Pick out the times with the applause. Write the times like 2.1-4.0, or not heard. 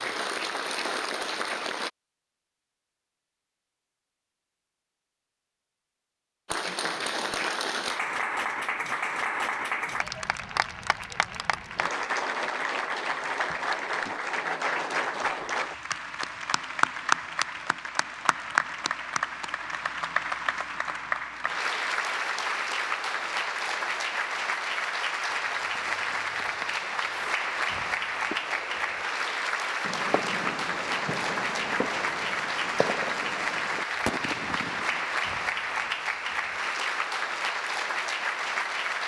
0.0-1.9, 6.5-39.0.